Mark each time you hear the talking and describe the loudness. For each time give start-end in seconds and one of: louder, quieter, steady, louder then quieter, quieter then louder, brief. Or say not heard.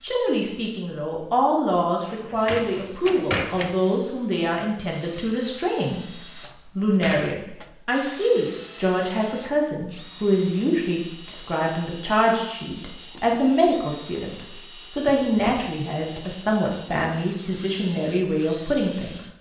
0.0-19.2 steady.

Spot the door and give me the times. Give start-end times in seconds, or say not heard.
2.1-3.8, 6.9-7.3, 15.1-16.4.